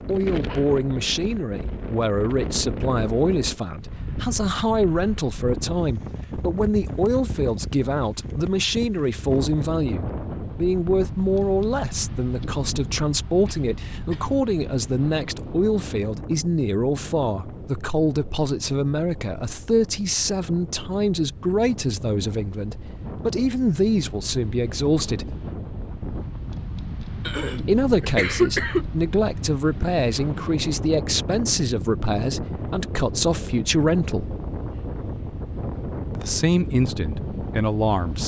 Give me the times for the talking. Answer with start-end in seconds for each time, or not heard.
0.1-25.4, 27.6-34.4, 36.1-38.2.